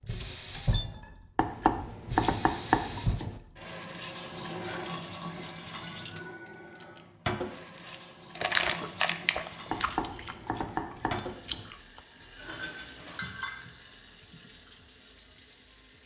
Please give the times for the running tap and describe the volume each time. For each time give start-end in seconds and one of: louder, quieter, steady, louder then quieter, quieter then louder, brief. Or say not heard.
0.0-16.0 quieter.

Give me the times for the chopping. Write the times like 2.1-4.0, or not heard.
1.4-3.4, 9.7-11.7.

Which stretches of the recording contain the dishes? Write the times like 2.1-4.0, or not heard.
12.3-13.7.